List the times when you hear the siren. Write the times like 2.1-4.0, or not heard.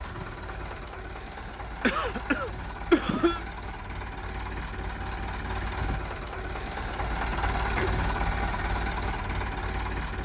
not heard.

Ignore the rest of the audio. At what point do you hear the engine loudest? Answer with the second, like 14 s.
8 s.